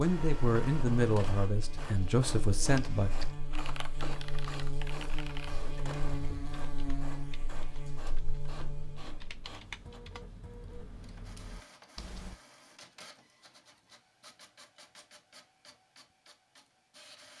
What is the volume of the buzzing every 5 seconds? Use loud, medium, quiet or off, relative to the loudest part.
loud, loud, off, off.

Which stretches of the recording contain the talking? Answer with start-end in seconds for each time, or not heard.
0.0-3.1.